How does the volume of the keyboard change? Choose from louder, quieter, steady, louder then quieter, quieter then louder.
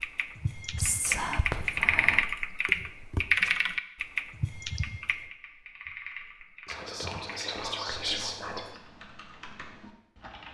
quieter.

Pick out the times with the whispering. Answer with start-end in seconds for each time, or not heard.
0.8-2.2, 6.7-8.8.